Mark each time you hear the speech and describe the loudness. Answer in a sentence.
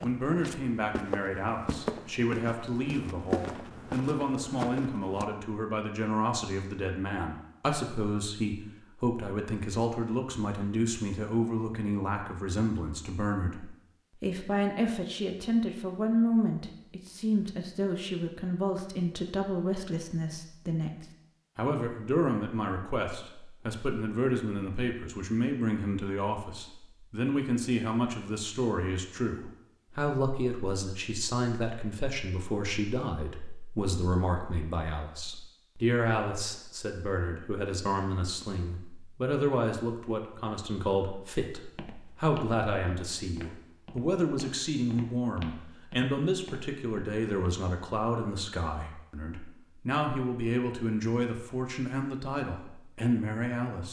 You can hear the speech from 0.0 to 53.8 s, at a steady volume.